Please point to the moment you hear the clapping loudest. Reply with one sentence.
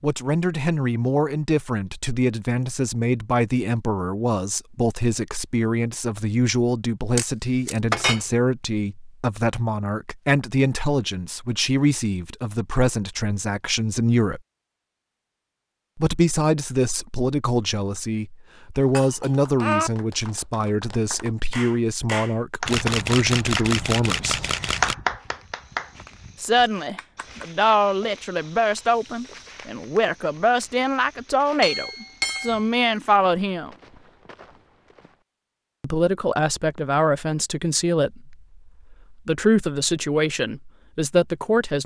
The loudest moment of the clapping is at 25 seconds.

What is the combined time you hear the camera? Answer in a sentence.
The camera can be heard for 3 seconds in total.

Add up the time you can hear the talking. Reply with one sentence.
The talking can be heard for 36 seconds in total.